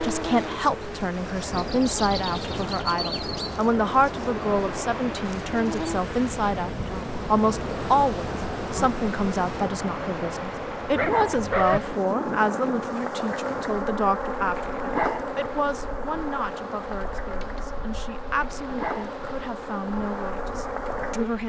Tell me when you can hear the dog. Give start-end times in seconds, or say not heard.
10.9-11.8.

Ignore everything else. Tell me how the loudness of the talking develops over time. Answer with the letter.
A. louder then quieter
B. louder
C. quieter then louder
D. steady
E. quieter
E.